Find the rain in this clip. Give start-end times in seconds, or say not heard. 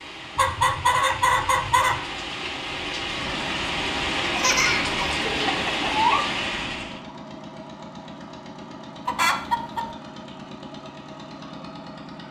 0.0-7.0.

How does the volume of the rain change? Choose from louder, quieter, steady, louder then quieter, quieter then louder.
louder.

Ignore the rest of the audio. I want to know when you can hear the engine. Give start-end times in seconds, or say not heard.
3.1-12.2.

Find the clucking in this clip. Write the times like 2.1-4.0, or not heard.
0.3-2.0, 4.2-6.2, 9.1-9.8.